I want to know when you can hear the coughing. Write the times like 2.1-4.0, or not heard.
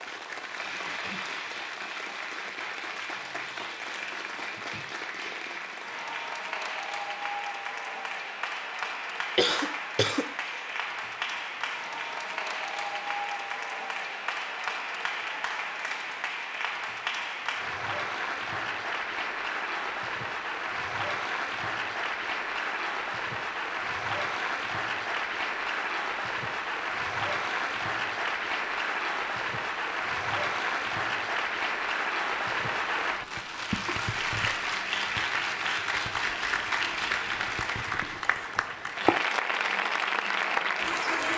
9.3-10.7.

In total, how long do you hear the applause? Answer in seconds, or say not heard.
41 s.